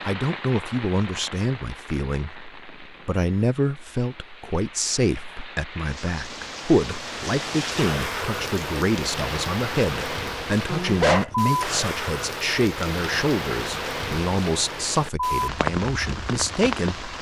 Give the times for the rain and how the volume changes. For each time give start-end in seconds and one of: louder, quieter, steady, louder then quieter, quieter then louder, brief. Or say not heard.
0.0-17.1 louder.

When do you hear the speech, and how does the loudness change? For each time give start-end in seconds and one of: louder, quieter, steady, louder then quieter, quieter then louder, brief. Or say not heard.
0.0-17.1 steady.